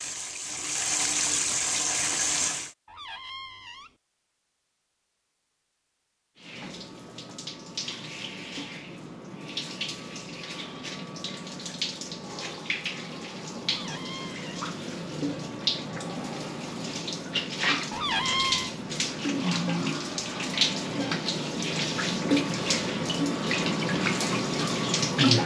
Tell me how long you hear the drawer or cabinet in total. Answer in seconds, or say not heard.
3 s.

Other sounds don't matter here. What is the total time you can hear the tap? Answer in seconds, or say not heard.
22 s.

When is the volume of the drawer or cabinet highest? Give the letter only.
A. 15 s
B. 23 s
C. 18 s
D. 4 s
C.